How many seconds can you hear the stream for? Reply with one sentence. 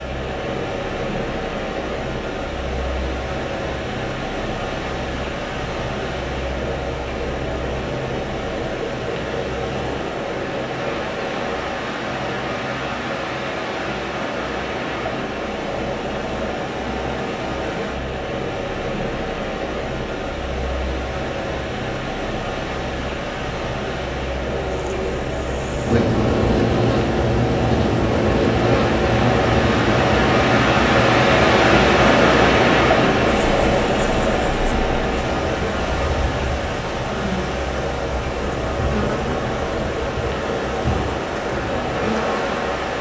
The stream can be heard for 43 seconds in total.